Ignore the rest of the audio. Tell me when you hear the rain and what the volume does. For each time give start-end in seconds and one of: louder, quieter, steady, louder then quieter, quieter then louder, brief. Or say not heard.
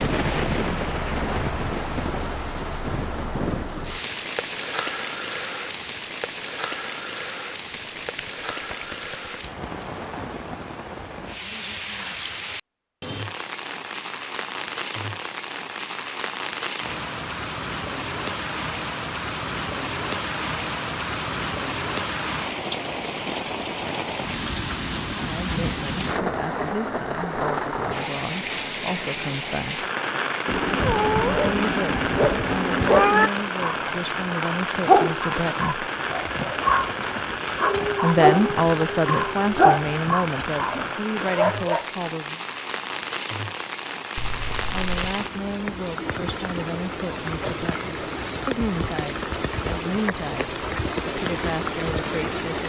0.0-52.6 steady.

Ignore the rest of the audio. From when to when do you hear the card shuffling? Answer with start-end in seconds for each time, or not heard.
7.8-9.3, 44.1-45.1.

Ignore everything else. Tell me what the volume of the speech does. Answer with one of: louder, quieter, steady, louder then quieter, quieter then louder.
louder then quieter.